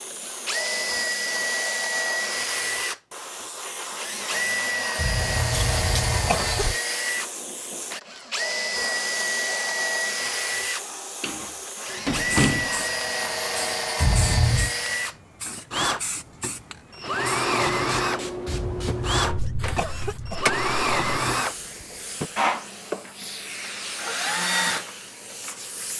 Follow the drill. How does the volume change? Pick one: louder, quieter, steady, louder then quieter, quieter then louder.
steady.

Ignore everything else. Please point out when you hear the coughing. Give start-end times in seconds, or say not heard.
5.0-6.7, 14.0-14.8, 18.4-20.4.